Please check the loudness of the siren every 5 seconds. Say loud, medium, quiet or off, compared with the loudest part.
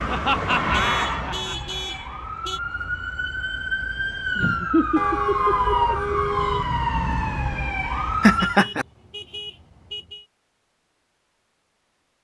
medium, loud, off.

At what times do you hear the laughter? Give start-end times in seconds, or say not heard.
0.1-1.8, 4.3-6.0, 8.2-8.8.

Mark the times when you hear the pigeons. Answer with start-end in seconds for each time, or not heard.
not heard.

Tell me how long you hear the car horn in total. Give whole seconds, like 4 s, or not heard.
6 s.